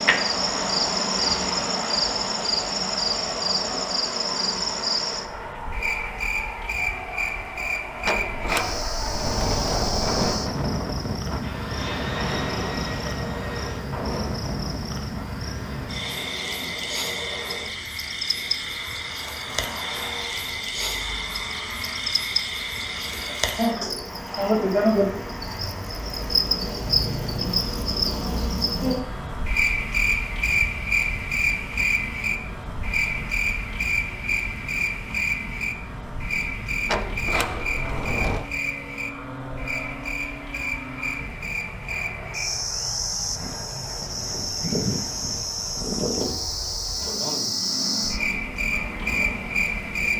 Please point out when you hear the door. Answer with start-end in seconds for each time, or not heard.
8.1-10.4, 36.9-38.5.